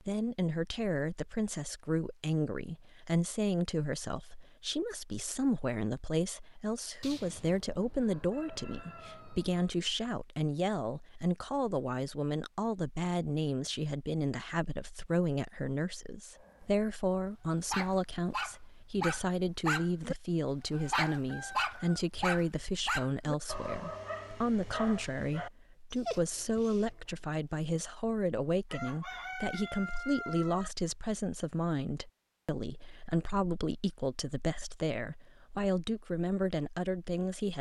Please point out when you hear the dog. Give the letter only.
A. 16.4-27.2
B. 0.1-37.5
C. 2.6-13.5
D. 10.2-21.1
A.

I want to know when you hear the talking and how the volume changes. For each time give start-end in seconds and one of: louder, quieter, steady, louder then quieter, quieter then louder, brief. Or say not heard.
0.1-37.5 steady.